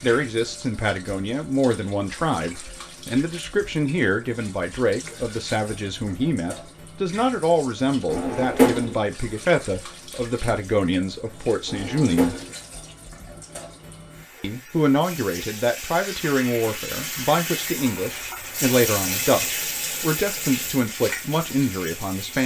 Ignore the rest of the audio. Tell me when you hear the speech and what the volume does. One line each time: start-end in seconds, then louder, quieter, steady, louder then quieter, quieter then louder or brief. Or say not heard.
0.0-12.3 steady
14.4-22.4 steady.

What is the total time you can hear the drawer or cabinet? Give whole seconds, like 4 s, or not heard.
2 s.